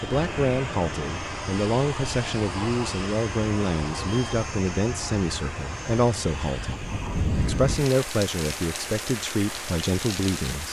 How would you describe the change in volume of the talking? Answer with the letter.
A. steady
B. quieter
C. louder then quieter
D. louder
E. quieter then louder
A.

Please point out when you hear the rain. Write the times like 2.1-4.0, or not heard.
0.0-10.6.